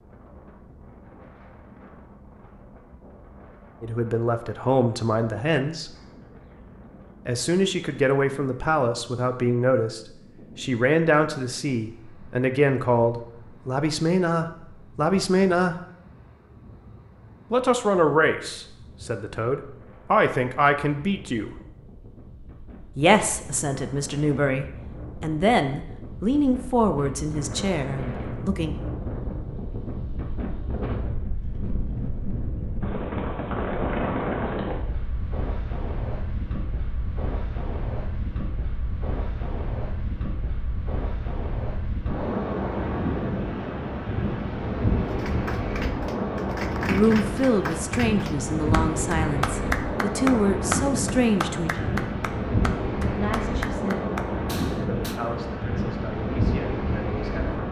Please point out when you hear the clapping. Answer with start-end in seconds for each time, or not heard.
45.0-55.2.